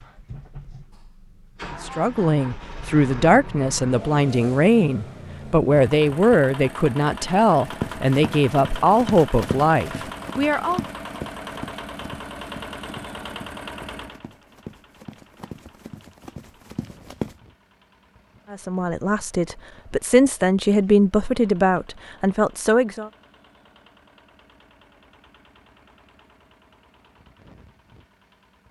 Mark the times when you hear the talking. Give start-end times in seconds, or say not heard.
1.8-10.8, 18.5-23.1.